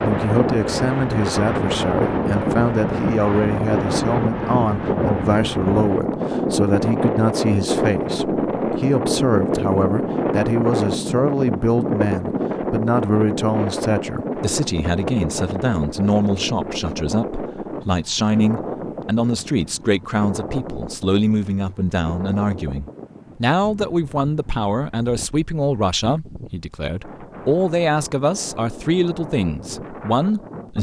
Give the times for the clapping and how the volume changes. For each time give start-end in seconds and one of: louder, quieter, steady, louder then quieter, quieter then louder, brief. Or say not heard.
not heard.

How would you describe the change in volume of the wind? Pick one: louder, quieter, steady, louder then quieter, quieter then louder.
quieter.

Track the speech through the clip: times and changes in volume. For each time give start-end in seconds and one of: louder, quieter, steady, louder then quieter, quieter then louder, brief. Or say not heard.
0.0-30.7 steady.